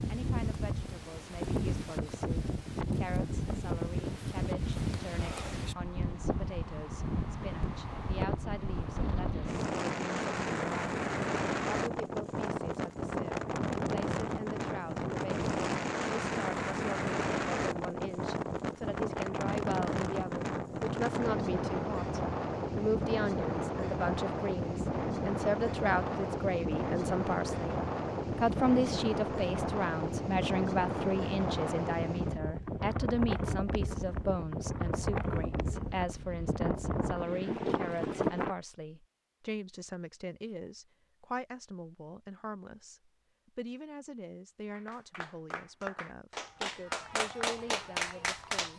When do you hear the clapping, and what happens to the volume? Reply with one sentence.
The clapping can be heard from 44.7 to 48.7 s, getting louder.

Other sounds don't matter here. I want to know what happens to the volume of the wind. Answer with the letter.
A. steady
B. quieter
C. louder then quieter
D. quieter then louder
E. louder
A.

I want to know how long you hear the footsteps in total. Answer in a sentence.
You can't hear the footsteps here.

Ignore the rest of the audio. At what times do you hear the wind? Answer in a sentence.
You can hear the wind from 0.0 to 38.5 s.